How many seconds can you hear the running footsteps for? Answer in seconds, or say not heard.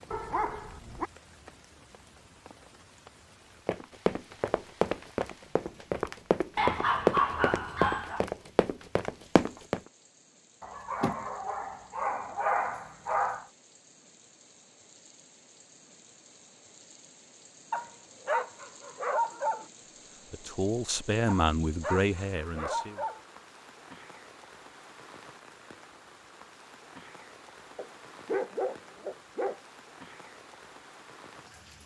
6 s.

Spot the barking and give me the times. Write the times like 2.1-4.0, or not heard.
0.1-1.1, 6.5-8.2, 10.6-13.4, 17.7-19.6, 21.2-23.2, 27.8-29.6.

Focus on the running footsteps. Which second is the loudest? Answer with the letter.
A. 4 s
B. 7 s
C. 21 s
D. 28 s
B.